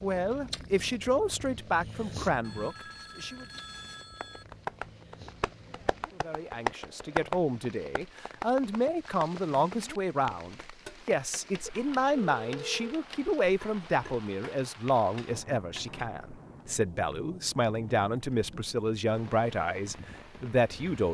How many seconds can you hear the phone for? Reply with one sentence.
You can hear the phone for 3 seconds altogether.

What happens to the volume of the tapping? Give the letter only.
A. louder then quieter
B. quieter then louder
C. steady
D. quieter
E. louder
A.